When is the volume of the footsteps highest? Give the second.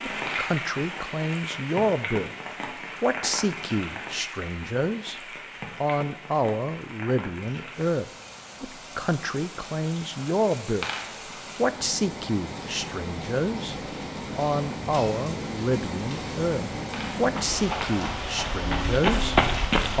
19 s.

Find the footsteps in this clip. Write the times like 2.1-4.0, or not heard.
17.1-19.9.